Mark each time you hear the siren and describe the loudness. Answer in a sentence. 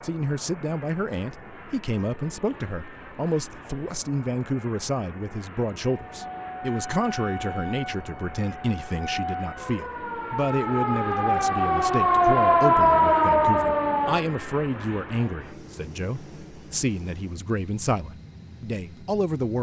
The siren can be heard from 6.1 to 14.2 s, getting louder.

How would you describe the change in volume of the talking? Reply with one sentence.
The loudness of the talking stays about the same.